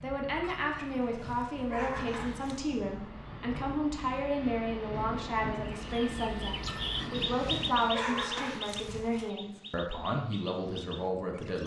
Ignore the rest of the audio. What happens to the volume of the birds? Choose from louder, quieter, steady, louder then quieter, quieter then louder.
quieter.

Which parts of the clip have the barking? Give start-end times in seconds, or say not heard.
0.4-2.7, 6.7-9.3.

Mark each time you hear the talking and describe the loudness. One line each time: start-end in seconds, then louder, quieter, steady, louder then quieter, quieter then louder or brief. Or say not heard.
0.0-11.6 steady.